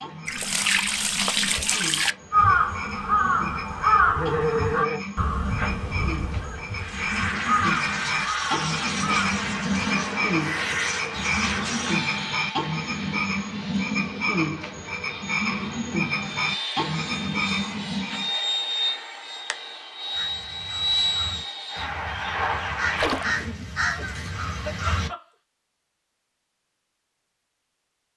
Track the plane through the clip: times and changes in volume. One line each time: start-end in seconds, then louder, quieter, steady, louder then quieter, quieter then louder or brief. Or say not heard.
6.7-23.5 quieter then louder.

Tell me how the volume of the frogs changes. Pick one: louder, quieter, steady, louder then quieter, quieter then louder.
louder.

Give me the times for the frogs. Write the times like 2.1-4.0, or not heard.
0.0-18.3.